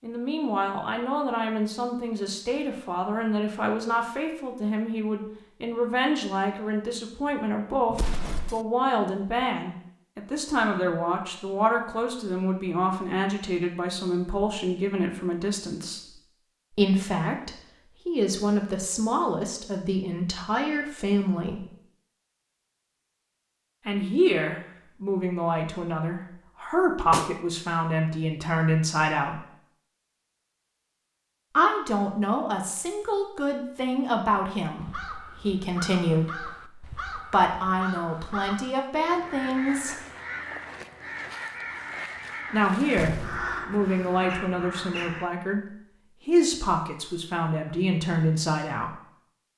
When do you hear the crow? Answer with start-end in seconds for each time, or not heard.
34.8-45.3.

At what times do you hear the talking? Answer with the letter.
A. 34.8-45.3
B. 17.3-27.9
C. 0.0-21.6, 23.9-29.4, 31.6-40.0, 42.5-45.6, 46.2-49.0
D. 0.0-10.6
C.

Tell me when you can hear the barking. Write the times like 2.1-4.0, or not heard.
not heard.